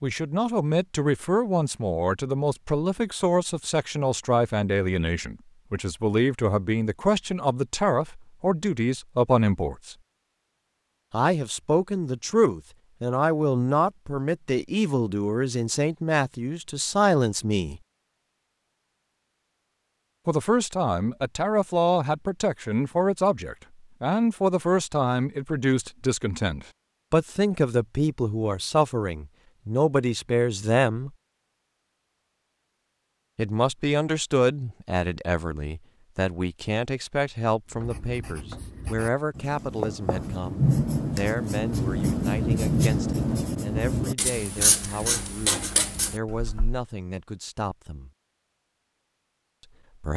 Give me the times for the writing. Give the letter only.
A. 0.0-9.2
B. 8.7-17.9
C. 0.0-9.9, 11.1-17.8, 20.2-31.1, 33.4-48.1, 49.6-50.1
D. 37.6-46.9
D.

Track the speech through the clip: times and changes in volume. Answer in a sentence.
You can hear the speech from 0.0 to 9.9 s, at a steady volume; from 11.1 to 17.8 s, at a steady volume; from 20.2 to 31.1 s, at a steady volume; from 33.4 to 48.1 s, getting quieter; and briefly from 49.6 to 50.1 s.